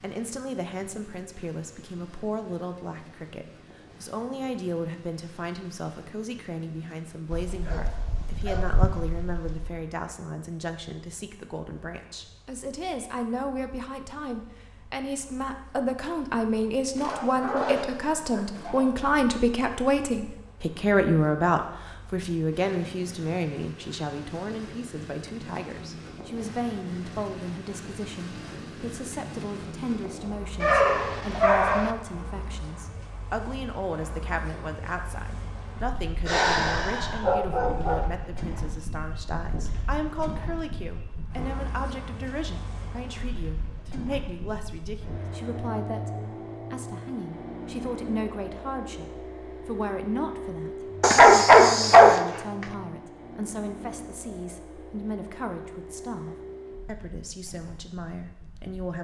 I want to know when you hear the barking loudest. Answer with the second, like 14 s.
51 s.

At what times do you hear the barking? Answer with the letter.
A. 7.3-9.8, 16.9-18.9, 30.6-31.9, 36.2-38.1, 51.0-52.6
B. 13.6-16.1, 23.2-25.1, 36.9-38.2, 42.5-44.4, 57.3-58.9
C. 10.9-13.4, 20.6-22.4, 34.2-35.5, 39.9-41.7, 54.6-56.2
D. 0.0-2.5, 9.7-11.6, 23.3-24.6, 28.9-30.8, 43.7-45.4
A.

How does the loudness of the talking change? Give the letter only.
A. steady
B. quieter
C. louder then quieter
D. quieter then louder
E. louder
C.